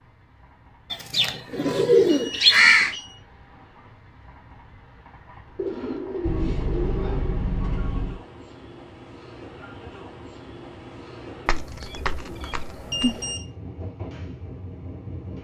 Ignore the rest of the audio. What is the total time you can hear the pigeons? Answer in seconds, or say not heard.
6 s.